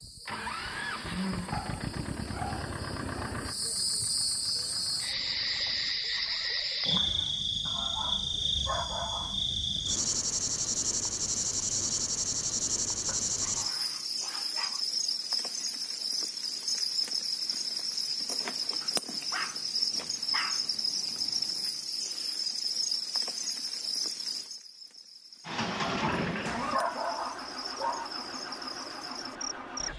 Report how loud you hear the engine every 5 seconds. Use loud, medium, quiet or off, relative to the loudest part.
loud, quiet, off, off, off, loud.